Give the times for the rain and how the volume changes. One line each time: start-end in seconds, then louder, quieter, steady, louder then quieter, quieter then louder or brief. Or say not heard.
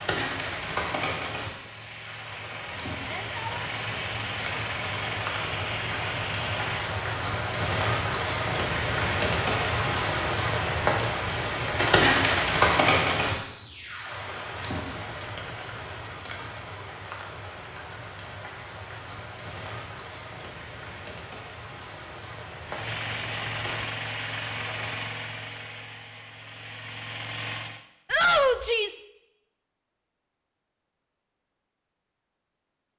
0.0-24.9 louder then quieter.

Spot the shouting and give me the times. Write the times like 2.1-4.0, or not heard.
3.0-3.6, 28.1-29.1.